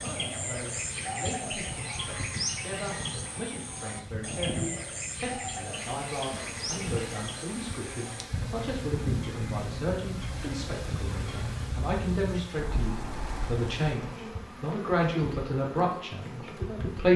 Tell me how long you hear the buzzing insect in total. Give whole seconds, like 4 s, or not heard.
17 s.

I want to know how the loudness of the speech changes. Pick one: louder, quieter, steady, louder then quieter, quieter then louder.
louder.